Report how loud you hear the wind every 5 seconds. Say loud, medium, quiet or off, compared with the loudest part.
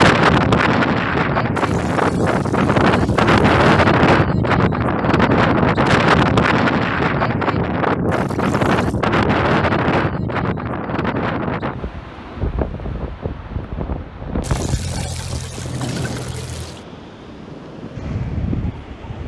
loud, loud, medium, quiet.